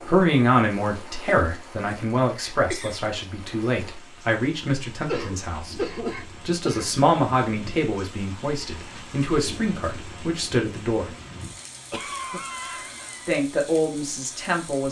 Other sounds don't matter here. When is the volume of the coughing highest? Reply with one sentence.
The loudest moment of the coughing is at 6 seconds.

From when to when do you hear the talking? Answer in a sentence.
You can hear the talking from 0.1 to 11.1 s and from 13.2 to 14.8 s.